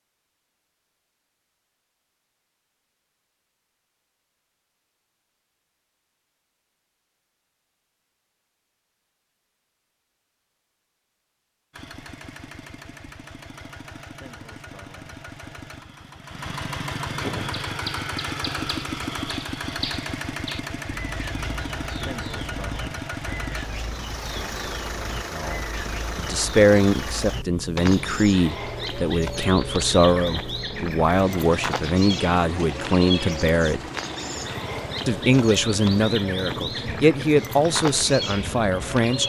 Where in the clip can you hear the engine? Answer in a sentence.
You can hear the engine from 11.7 to 39.2 s.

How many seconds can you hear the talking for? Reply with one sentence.
The talking can be heard for 13 seconds in total.